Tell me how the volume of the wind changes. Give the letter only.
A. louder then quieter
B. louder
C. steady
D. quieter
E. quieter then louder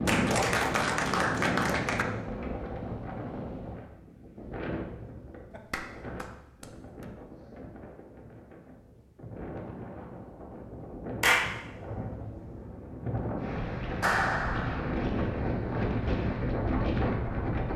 E.